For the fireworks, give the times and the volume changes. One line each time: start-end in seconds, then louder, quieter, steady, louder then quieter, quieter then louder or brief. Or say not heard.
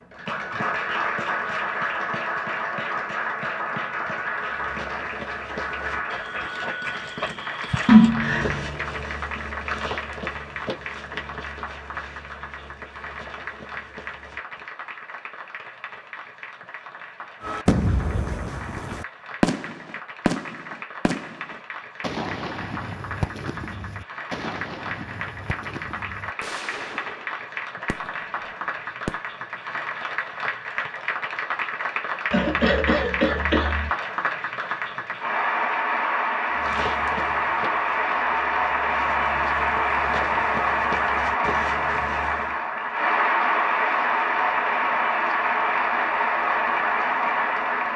17.4-29.2 quieter.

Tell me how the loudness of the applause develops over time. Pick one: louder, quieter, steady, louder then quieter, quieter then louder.
quieter then louder.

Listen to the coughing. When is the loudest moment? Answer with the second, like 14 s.
8 s.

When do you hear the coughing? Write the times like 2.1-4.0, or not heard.
7.8-8.8, 32.3-33.9.